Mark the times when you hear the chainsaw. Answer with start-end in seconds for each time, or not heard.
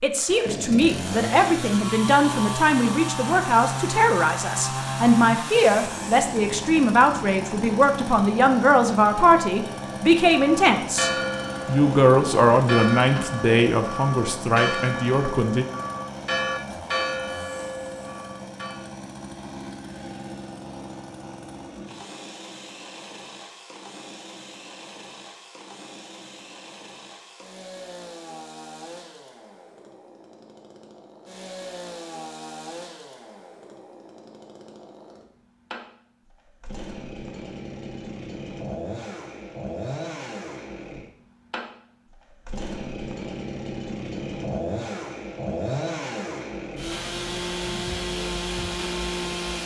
0.1-49.6.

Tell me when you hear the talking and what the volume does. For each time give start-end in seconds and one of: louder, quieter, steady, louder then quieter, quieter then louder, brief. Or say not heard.
0.0-15.7 steady.